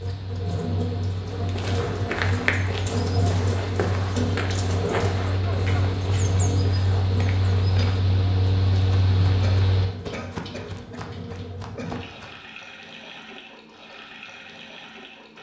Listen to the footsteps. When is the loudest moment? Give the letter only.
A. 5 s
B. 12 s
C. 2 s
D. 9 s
C.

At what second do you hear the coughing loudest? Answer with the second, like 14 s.
5 s.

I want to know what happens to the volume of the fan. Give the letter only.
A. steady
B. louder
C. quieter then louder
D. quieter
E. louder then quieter
B.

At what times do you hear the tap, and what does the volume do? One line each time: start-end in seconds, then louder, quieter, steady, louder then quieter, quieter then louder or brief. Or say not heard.
0.0-15.3 quieter.